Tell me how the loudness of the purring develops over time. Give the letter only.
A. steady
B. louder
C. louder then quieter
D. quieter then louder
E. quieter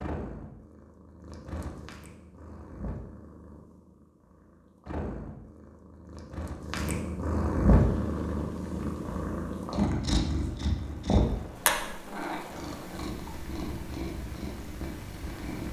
C.